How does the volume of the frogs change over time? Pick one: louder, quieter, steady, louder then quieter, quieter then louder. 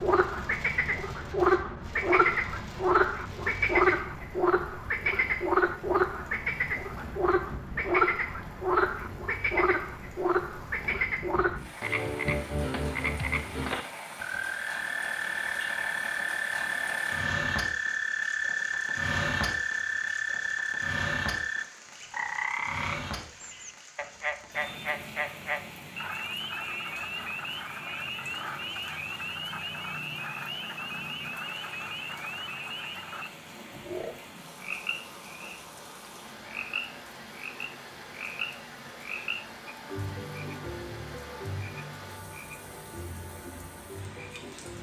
quieter.